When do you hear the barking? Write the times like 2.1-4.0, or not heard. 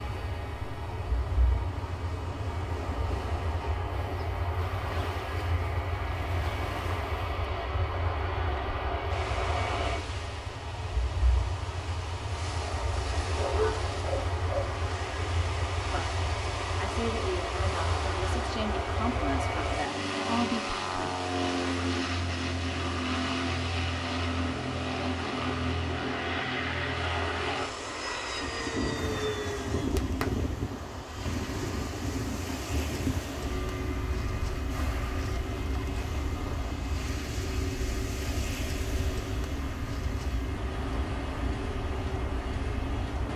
13.2-14.8.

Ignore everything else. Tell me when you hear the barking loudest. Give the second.
14 s.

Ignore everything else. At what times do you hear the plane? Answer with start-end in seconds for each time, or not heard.
0.0-43.3.